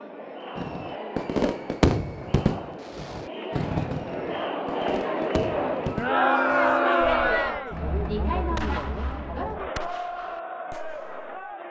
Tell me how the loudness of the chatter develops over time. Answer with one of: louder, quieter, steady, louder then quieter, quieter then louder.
louder then quieter.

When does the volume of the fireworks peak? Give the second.
2 s.